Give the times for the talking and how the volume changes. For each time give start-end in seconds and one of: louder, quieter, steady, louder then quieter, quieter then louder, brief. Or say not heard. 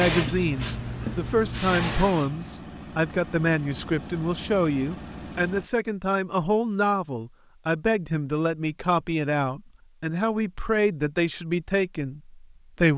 0.0-12.9 steady.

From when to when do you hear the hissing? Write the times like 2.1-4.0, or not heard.
0.0-2.5.